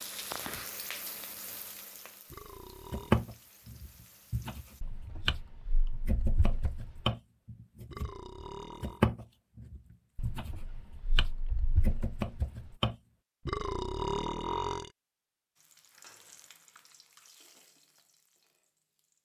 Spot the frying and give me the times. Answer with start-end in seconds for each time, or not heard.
0.0-4.8, 15.6-19.1.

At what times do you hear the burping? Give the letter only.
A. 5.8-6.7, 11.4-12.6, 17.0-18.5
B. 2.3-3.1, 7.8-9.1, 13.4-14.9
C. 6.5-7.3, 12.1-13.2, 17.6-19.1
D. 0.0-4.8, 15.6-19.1
B.